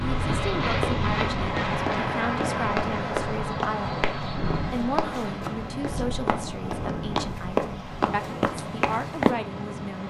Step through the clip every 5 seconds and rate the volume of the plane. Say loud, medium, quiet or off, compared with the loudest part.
loud, medium.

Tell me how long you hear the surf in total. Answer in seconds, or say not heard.
10 s.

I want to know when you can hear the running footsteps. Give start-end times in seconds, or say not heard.
0.6-9.3.